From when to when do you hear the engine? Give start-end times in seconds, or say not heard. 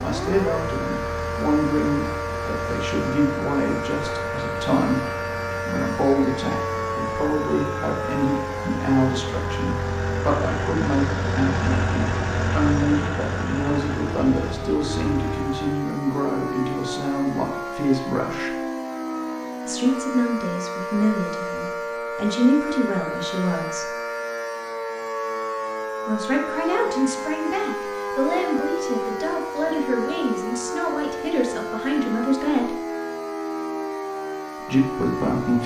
0.0-15.7.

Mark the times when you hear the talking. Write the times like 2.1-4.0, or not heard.
0.0-5.0, 5.7-18.6, 19.6-23.9, 26.1-32.8, 34.6-35.6.